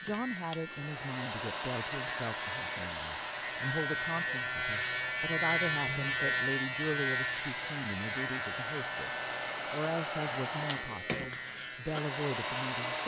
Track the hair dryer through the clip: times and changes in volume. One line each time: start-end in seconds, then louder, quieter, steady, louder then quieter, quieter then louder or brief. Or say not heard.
0.0-13.0 quieter then louder.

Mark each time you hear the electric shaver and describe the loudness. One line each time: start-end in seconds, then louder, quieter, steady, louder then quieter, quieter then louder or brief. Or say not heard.
0.0-13.0 louder then quieter.